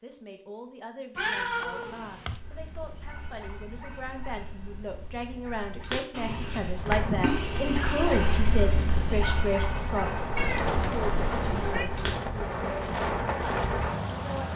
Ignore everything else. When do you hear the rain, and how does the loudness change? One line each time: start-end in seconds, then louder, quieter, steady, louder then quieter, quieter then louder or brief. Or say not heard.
6.7-14.5 louder.